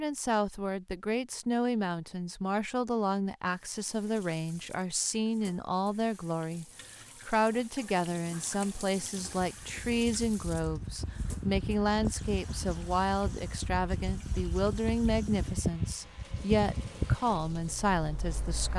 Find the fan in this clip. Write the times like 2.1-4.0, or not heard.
9.4-18.7.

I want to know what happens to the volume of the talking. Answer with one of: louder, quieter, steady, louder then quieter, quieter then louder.
steady.